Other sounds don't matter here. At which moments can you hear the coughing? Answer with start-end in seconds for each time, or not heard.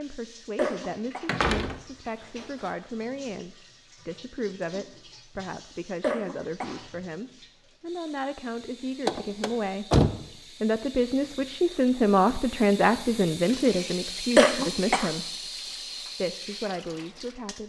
0.6-1.2, 6.0-6.8, 14.3-15.1.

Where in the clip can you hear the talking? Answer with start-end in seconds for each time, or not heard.
0.0-9.9, 10.6-15.5, 16.1-17.6.